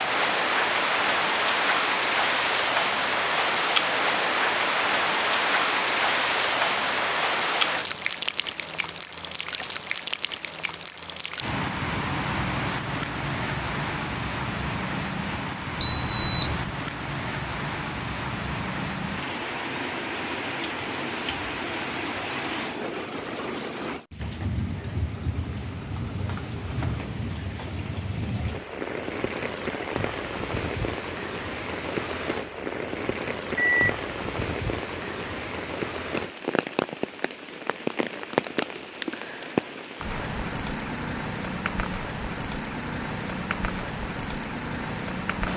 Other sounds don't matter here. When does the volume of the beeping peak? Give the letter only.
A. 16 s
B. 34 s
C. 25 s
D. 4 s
A.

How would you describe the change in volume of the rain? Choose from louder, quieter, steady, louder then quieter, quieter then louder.
quieter.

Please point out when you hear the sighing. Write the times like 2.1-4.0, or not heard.
not heard.